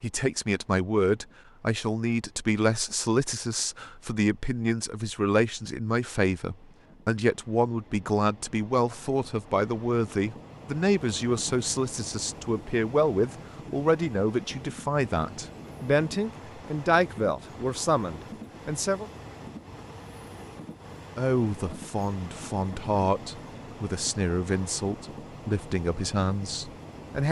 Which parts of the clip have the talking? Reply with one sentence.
The talking can be heard from 0.0 to 19.1 s and from 21.1 to 27.2 s.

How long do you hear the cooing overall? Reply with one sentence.
The cooing can't be heard in this clip.